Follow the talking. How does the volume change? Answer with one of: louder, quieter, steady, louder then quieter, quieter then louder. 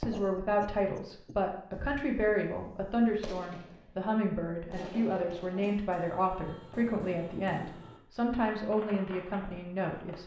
steady.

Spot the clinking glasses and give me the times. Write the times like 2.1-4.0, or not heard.
not heard.